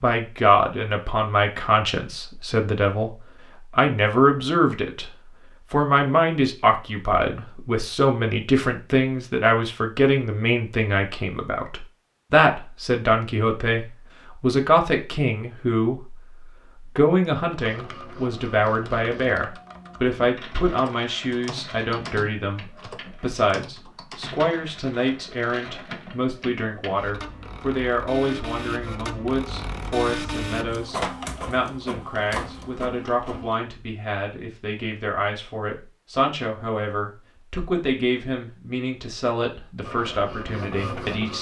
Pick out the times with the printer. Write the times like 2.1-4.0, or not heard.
17.6-33.5, 39.8-41.3.